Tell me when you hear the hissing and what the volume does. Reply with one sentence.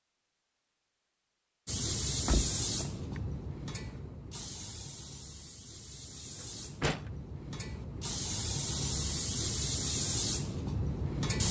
You can hear the hissing from 1.6 to 11.4 s, getting quieter then louder.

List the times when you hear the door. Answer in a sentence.
The door can be heard from 2.1 to 3.2 s and from 6.4 to 7.1 s.